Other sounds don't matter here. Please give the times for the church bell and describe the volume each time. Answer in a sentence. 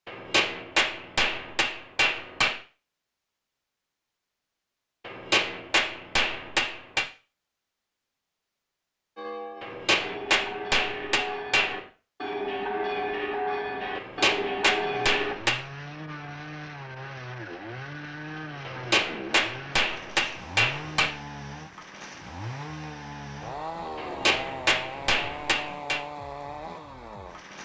The church bell can be heard from 9.2 to 15.3 s, getting louder.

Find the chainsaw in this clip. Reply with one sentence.
The chainsaw can be heard from 14.8 to 27.5 s.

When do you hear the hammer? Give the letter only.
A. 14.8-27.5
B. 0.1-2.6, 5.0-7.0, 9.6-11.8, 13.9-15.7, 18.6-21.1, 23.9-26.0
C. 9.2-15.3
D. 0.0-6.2
B.